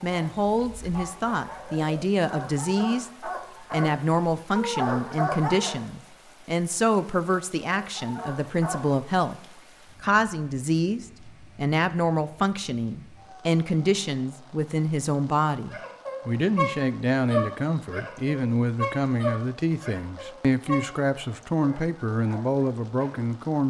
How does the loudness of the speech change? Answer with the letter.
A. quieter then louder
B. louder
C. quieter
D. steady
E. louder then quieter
D.